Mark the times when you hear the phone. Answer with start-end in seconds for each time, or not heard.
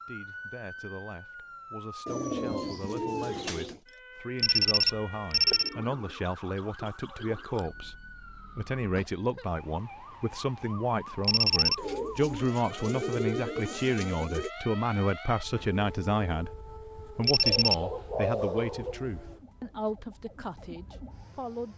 4.3-5.7, 11.2-11.8, 17.2-17.8.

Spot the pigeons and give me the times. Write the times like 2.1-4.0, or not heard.
2.0-3.8, 5.5-7.7, 11.8-14.5, 17.4-19.0.